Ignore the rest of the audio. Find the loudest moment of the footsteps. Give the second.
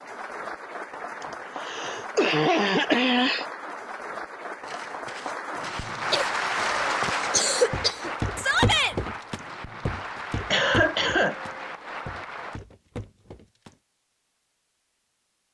9 s.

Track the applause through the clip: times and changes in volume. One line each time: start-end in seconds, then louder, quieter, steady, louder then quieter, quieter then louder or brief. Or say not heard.
0.0-12.6 louder then quieter.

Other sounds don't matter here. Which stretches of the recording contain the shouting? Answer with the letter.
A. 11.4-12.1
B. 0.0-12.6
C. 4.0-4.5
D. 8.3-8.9
D.